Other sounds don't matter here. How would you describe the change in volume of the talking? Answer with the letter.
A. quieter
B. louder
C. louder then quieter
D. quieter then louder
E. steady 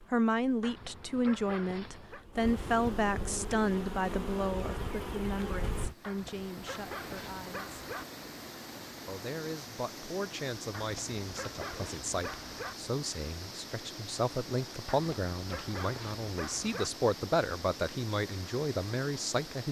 D.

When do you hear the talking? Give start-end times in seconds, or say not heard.
0.1-7.8, 9.1-19.6.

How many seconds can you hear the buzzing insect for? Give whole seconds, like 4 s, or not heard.
6 s.